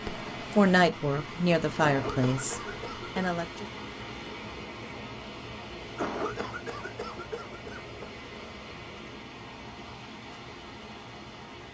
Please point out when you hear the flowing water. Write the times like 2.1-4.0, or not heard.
0.0-11.6.